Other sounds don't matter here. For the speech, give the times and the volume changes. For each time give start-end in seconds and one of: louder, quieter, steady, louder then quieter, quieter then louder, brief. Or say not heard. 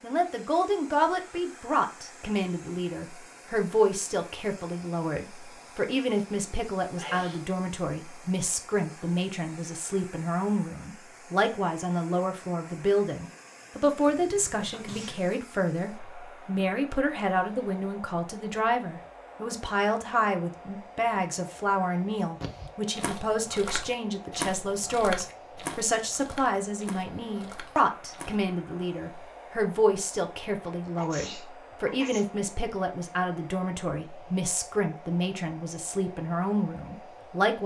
0.0-37.6 steady.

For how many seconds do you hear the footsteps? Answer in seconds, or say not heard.
6 s.